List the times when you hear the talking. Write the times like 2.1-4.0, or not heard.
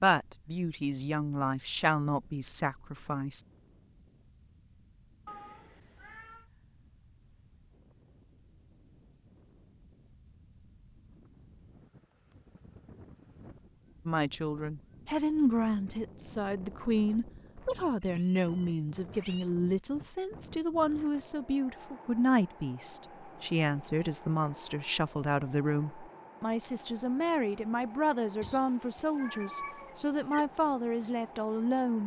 0.0-3.5, 14.1-32.0.